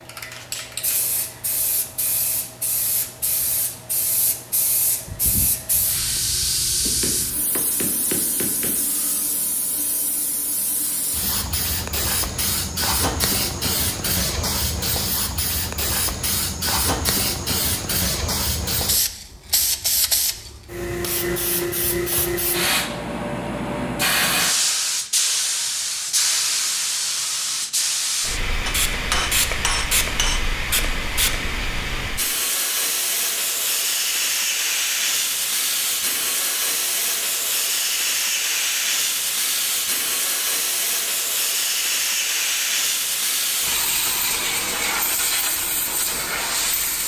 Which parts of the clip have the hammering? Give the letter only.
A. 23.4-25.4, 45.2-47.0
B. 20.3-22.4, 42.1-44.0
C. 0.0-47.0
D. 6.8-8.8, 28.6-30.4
D.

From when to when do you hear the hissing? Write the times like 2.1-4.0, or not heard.
0.0-47.0.